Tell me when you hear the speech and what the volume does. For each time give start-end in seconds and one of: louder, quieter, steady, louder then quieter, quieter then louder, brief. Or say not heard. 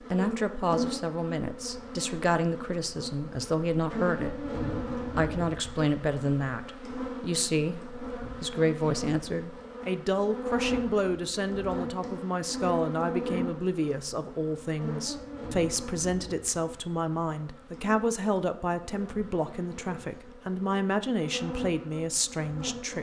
0.1-22.9 steady.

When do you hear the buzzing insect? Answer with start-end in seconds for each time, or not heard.
0.0-22.9.